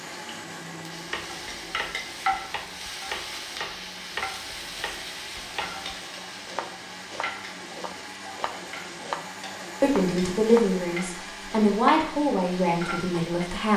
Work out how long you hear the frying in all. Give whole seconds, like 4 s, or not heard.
14 s.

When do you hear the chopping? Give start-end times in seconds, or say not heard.
1.1-10.8.